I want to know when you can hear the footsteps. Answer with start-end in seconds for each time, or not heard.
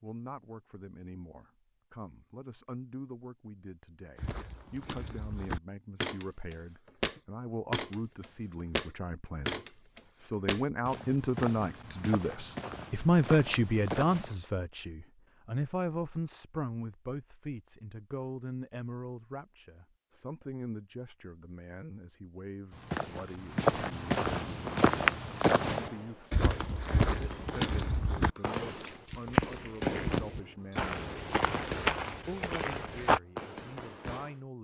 4.2-14.3, 22.7-33.2.